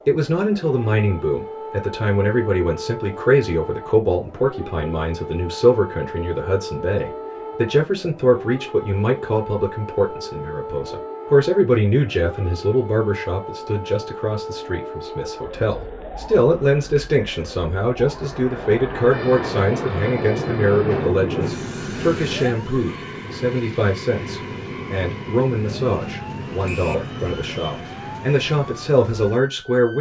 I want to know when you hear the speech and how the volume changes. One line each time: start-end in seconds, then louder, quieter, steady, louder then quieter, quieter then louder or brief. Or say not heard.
0.1-29.9 steady.